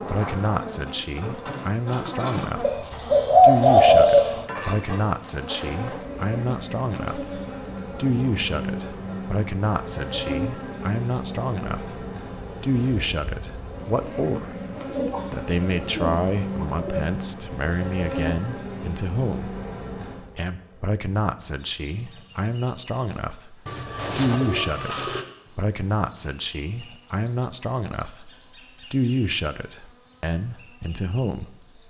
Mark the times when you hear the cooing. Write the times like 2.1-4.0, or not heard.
2.6-4.5, 14.8-17.1, 23.6-25.2.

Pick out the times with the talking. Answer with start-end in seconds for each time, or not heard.
0.0-19.6, 20.4-23.6, 24.1-28.3, 28.9-31.5.